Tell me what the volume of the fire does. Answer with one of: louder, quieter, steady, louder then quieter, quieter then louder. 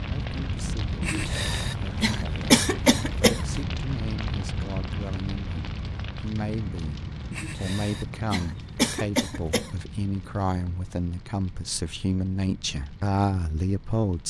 quieter.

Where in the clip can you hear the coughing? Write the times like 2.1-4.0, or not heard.
1.0-3.5, 7.3-9.7.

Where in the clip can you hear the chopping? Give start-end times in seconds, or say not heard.
not heard.